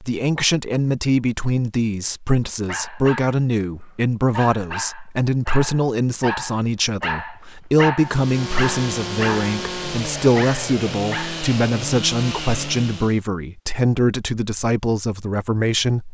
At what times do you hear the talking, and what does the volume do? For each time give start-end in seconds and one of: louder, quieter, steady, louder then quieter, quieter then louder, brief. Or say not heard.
0.0-16.1 steady.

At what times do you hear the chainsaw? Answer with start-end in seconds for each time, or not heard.
8.0-13.2.